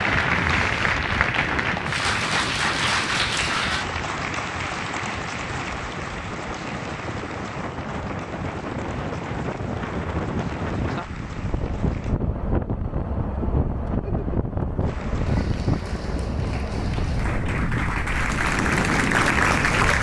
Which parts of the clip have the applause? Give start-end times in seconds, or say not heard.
0.0-12.2, 14.8-19.9.